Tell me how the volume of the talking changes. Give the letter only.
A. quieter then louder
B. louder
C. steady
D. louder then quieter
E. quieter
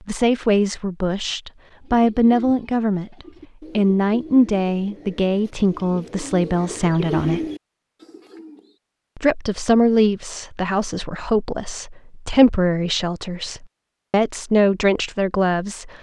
C.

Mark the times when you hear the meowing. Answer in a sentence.
You can't hear the meowing here.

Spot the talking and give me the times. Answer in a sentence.
The talking can be heard from 0.1 to 7.5 s and from 9.2 to 15.9 s.